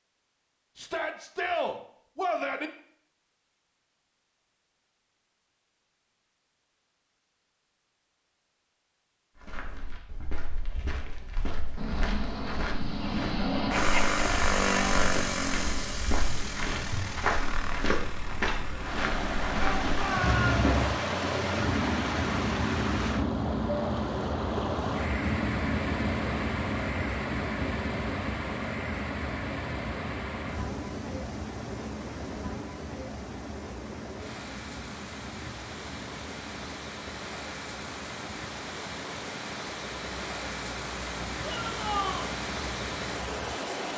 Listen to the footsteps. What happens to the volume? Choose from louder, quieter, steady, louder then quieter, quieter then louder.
louder.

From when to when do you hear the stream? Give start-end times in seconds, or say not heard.
18.7-43.9.